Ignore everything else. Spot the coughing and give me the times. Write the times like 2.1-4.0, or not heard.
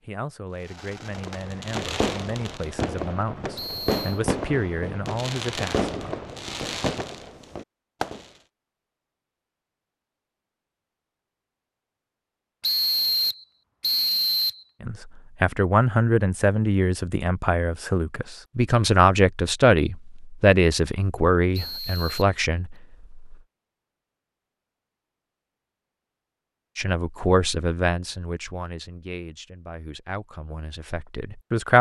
not heard.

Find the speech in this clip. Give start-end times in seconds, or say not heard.
0.0-5.8, 14.8-23.4, 26.8-31.7.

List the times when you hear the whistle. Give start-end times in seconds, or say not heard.
3.5-4.2, 12.6-14.7, 21.5-22.3.